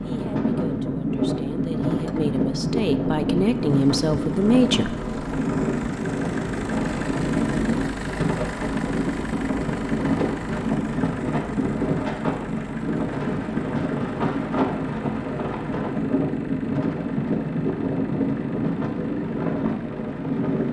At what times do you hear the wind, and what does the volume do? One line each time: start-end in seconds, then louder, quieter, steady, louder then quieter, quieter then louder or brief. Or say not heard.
0.0-20.6 steady.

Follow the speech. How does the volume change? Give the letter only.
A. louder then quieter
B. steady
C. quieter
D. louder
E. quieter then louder
D.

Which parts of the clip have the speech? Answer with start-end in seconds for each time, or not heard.
0.0-5.1.